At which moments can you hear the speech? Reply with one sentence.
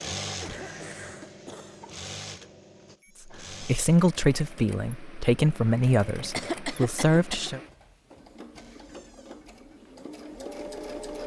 You can hear the speech from 3.3 to 7.6 s.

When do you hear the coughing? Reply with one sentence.
You can hear the coughing from 0.4 to 1.9 s and from 6.3 to 7.5 s.